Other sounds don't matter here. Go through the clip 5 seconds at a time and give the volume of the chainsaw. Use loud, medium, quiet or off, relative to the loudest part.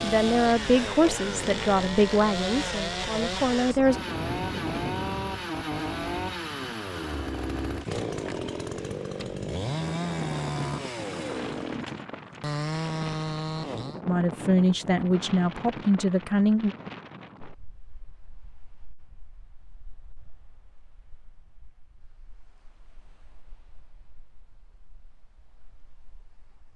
loud, loud, loud, off, off, off.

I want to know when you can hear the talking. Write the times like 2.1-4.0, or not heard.
0.0-4.0, 14.1-16.8.